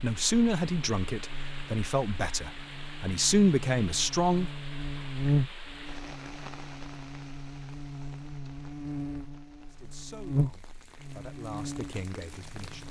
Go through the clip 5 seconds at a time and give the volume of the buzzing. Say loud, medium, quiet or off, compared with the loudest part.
medium, loud, loud.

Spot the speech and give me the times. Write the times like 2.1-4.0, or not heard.
0.0-4.5, 9.7-12.8.